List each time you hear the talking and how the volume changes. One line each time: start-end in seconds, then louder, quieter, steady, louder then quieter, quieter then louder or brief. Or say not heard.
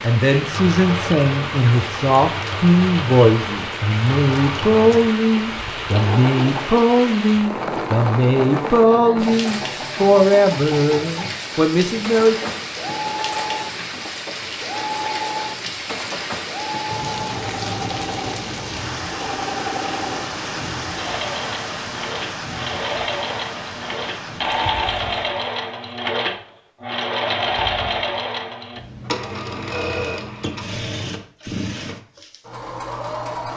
0.0-12.5 steady.